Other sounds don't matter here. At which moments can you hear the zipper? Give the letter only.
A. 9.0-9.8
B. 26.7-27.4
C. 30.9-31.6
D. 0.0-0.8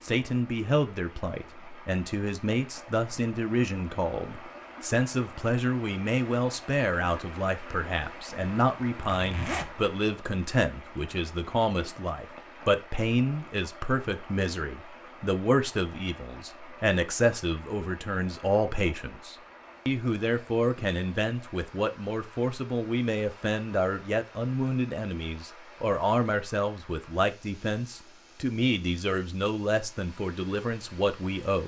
A.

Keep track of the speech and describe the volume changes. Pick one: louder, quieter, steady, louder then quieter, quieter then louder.
steady.